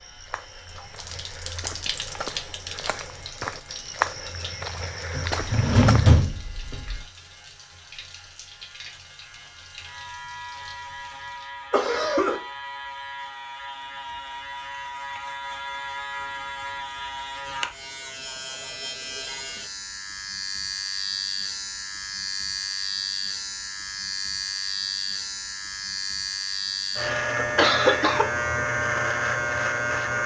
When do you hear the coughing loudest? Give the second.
28 s.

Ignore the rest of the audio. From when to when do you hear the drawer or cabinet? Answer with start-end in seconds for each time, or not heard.
5.1-7.0.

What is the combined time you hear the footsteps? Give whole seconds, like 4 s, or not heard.
6 s.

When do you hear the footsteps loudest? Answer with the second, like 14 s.
4 s.